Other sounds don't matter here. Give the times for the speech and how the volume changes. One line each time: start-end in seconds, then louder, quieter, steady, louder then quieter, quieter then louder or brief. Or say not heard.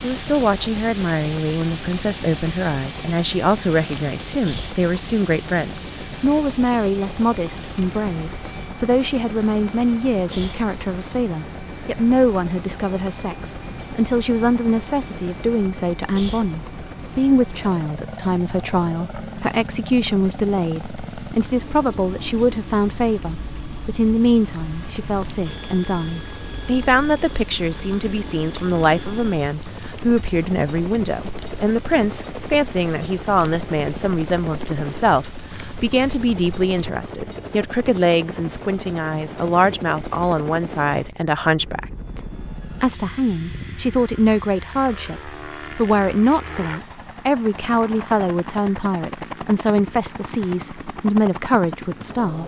0.0-52.4 steady.